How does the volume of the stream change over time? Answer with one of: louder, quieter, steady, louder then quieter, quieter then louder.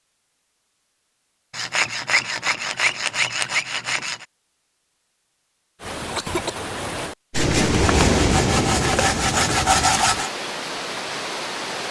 louder then quieter.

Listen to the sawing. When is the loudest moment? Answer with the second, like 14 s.
10 s.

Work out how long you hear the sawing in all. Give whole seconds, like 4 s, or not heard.
6 s.